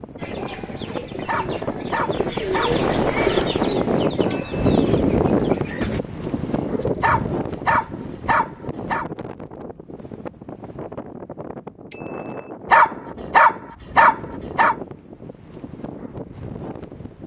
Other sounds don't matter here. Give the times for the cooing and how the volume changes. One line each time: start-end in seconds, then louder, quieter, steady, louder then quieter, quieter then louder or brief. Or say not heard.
0.1-7.9 louder then quieter.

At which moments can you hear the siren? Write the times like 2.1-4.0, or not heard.
not heard.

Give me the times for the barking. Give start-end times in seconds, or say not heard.
1.2-3.3, 7.0-9.1, 12.7-14.8.